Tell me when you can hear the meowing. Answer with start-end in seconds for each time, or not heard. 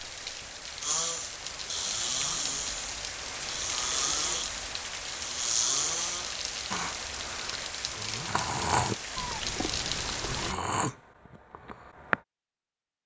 9.2-10.6.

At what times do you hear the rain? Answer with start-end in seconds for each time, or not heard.
0.0-10.6.